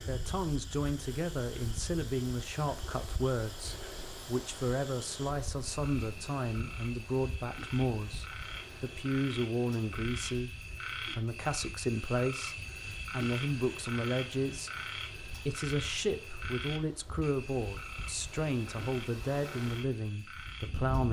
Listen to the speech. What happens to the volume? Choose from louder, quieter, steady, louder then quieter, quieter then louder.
steady.